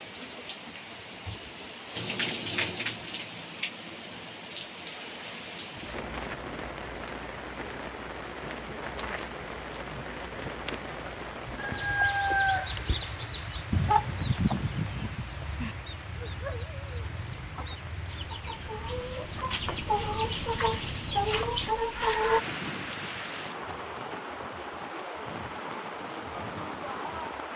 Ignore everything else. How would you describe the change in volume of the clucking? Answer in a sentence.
The volume of the clucking goes down, then up.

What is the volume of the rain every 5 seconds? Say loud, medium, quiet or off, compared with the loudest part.
loud, loud, loud, medium, loud, loud.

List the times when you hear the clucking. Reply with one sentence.
You can hear the clucking from 11.6 to 22.4 s.